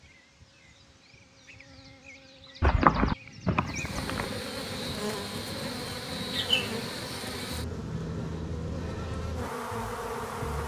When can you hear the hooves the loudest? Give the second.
3 s.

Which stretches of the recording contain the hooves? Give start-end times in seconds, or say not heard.
2.6-4.3.